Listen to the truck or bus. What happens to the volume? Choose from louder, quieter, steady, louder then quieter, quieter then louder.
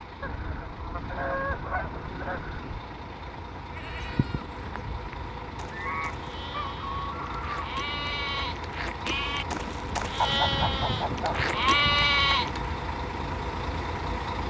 louder.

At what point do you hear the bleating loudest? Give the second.
12 s.